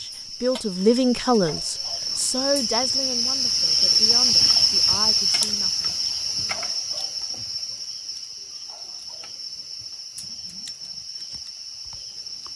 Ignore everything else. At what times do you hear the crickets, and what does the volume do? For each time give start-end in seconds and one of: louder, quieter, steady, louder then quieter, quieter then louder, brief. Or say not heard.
0.0-12.5 louder then quieter.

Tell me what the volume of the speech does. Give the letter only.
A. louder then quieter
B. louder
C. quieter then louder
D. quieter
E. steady
D.